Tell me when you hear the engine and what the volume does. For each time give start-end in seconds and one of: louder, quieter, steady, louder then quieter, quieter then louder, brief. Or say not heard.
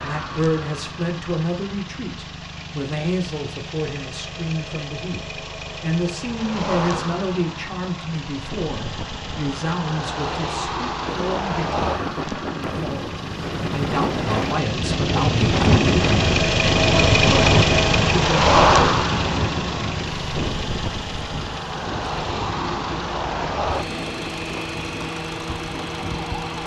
0.0-26.6 louder then quieter.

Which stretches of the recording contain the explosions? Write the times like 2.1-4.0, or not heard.
not heard.